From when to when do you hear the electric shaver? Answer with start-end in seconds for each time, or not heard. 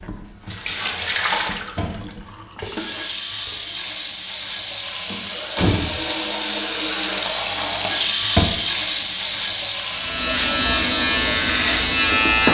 9.9-12.4.